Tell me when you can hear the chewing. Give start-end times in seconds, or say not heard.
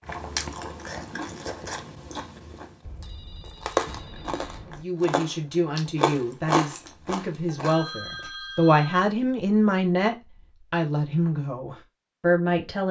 0.1-7.8.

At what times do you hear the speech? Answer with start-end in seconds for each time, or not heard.
4.7-12.8.